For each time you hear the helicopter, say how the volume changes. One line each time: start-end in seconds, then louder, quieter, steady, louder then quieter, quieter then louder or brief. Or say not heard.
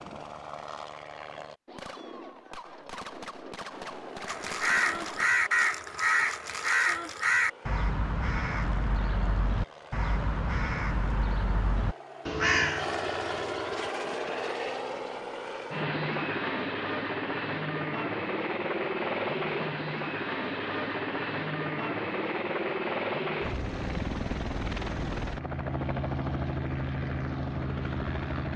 0.0-1.6 brief
3.7-28.5 louder.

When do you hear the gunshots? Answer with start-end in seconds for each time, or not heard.
1.6-5.2.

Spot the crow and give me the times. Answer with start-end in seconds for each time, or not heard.
4.2-13.9.